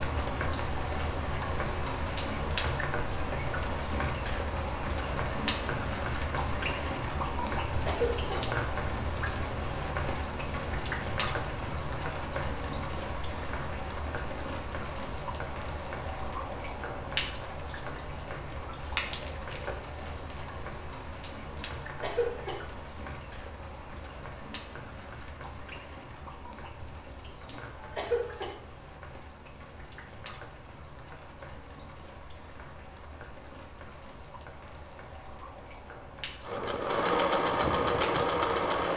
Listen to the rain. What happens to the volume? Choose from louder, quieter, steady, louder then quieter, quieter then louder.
quieter.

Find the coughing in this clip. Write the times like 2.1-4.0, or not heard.
7.7-8.4, 21.6-22.6, 27.5-28.6.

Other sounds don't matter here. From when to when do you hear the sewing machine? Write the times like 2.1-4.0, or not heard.
36.4-38.9.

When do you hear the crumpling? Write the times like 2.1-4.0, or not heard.
19.1-20.6.